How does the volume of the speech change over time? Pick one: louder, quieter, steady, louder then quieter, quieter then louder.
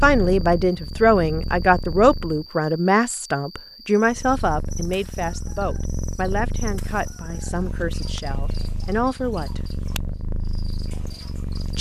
quieter.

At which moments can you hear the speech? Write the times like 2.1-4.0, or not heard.
0.0-9.6.